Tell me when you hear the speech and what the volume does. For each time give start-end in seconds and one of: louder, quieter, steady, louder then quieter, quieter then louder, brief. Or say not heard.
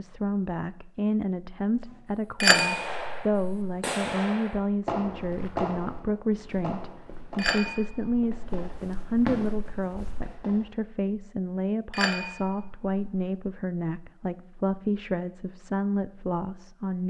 0.0-17.0 steady.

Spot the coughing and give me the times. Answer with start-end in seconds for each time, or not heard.
not heard.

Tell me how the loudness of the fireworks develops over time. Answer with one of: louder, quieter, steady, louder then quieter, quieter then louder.
quieter then louder.